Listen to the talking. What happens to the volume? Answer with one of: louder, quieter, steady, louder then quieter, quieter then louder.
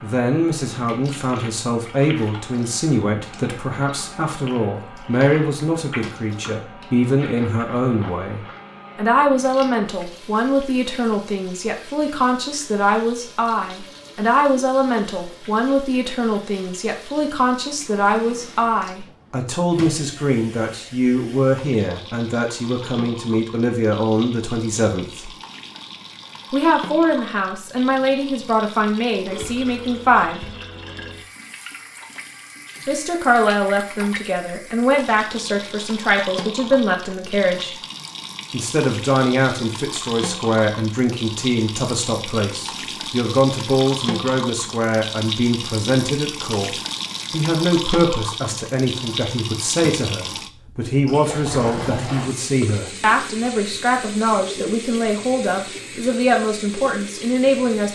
steady.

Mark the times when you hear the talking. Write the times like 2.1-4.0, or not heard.
0.0-25.3, 26.5-30.4, 32.9-37.8, 38.5-57.8.